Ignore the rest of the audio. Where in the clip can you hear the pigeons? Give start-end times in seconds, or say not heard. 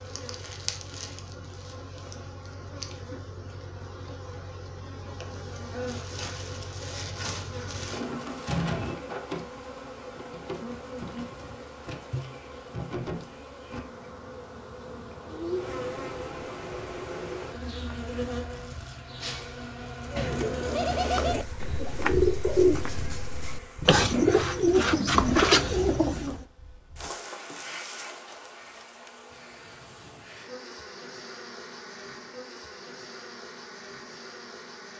20.1-26.4.